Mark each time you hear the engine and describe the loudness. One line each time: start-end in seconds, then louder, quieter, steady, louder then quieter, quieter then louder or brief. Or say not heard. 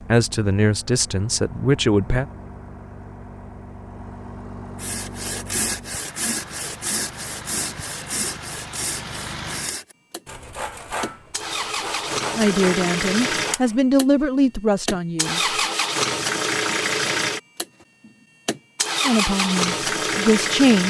0.0-20.8 louder.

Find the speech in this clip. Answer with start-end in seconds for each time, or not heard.
0.1-2.2, 12.3-15.6, 19.1-20.8.